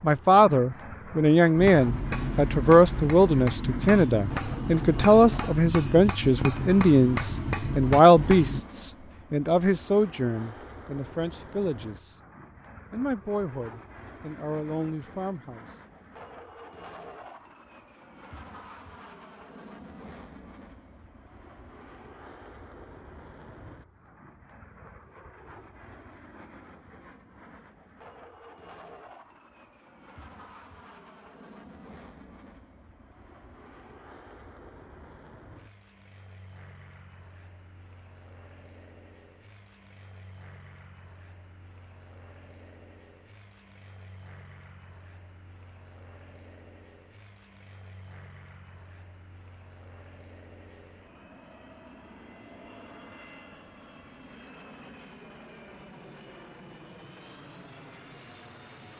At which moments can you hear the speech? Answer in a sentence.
The speech can be heard from 0.0 to 12.2 s and from 12.9 to 15.7 s.